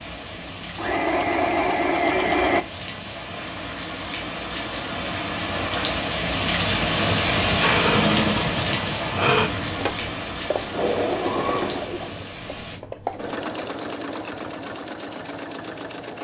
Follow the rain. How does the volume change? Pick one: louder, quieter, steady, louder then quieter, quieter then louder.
louder then quieter.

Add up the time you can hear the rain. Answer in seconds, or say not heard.
13 s.